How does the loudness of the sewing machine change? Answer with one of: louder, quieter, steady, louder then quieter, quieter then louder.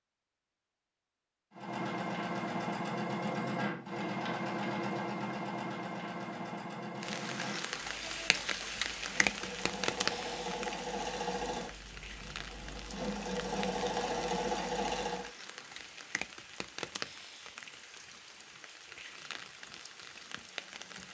quieter then louder.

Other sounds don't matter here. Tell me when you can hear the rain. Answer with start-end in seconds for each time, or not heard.
7.0-21.0.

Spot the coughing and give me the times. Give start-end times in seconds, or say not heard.
not heard.